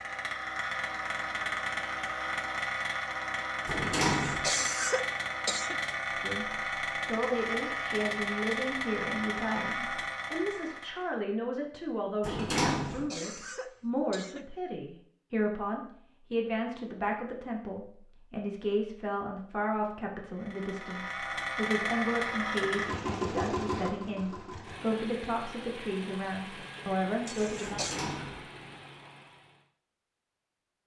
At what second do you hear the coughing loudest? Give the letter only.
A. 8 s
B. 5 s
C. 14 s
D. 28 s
B.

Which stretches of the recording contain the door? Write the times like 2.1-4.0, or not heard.
3.6-4.5, 12.2-13.1, 27.6-28.5.